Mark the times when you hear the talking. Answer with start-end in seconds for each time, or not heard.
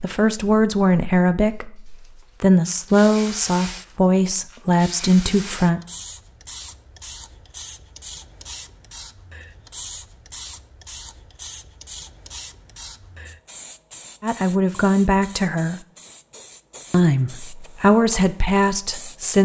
0.0-5.8, 14.2-15.8, 16.9-19.4.